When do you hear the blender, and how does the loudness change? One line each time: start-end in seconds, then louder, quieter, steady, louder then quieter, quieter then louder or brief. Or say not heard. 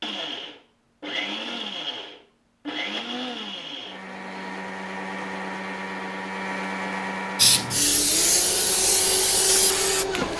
0.0-10.3 steady.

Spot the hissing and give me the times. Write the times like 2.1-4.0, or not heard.
7.3-10.3.